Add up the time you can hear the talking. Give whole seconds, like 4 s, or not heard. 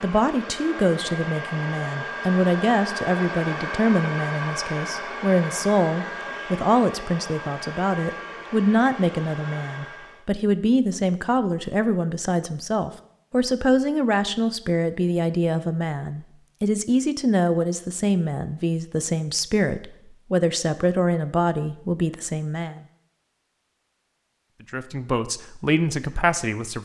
25 s.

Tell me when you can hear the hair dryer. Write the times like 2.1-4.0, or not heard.
0.0-10.3.